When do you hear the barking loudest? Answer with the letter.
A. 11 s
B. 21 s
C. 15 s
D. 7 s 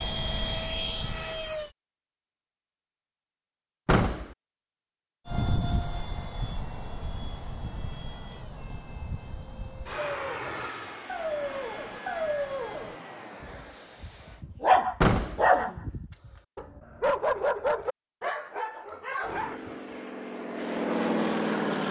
C.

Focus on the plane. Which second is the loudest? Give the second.
21 s.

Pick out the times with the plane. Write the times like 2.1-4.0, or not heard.
0.0-1.8, 5.2-14.4, 19.2-21.8.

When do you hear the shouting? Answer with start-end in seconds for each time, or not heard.
not heard.